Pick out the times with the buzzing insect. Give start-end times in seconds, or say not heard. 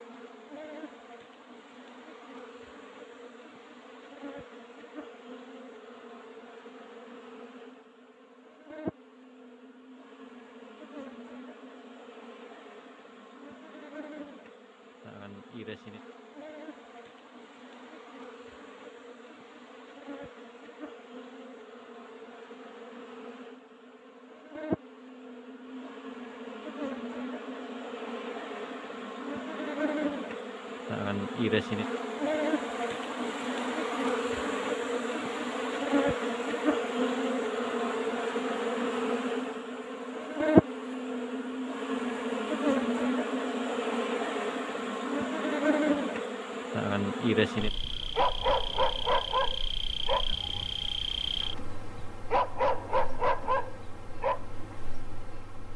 0.0-55.7.